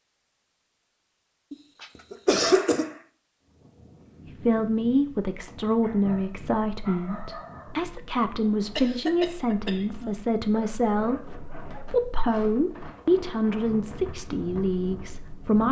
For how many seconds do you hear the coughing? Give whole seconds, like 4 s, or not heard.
3 s.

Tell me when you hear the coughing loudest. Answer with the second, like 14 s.
2 s.